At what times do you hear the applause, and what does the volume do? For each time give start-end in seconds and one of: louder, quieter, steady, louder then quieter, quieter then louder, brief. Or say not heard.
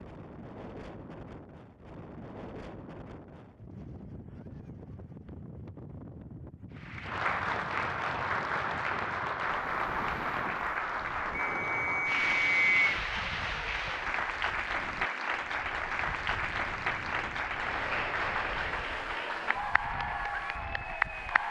6.8-21.4 steady.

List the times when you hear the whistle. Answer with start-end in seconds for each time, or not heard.
11.3-12.8.